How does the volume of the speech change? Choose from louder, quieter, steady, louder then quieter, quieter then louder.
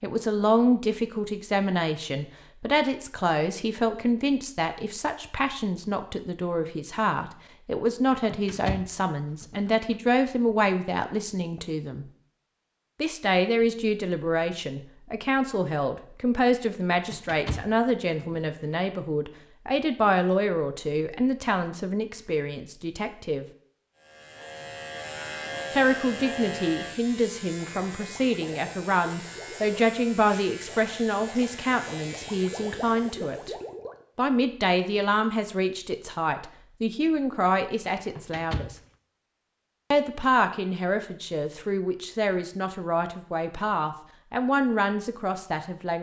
steady.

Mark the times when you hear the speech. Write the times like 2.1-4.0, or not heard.
0.0-12.1, 13.0-23.4, 25.7-33.5, 34.1-38.8, 39.9-45.9.